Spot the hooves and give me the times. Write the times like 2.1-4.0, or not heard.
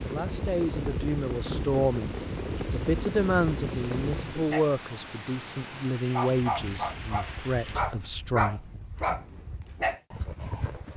0.0-4.6, 6.3-10.9.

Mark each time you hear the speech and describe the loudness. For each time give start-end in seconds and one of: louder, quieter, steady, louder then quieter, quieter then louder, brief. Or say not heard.
0.0-8.6 quieter.